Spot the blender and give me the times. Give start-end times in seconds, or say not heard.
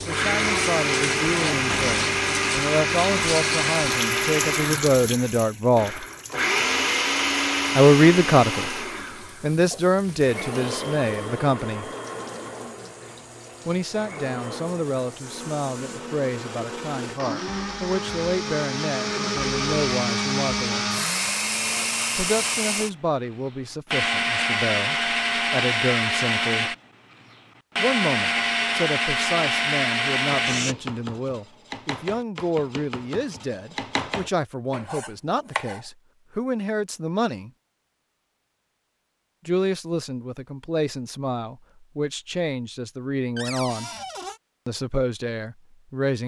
0.0-30.8.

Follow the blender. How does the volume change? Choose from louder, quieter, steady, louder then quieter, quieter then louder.
quieter then louder.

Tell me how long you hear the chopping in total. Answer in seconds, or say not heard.
5 s.